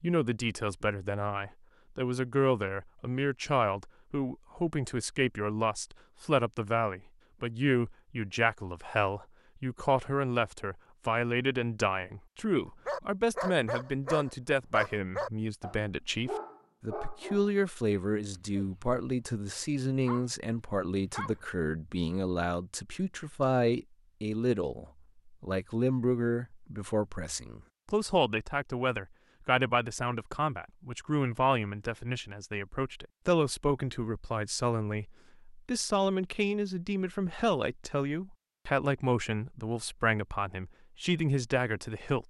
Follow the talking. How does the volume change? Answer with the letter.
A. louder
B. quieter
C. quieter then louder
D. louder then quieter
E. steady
E.